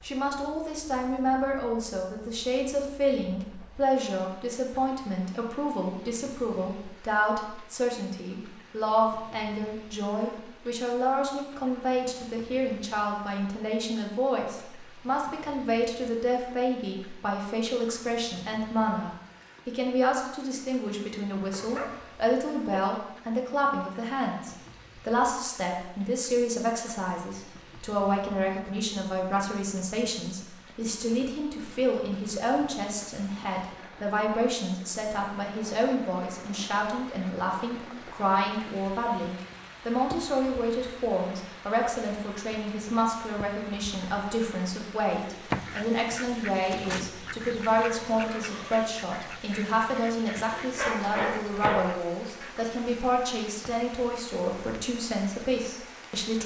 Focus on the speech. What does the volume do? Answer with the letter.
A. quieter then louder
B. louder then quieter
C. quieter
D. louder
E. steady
E.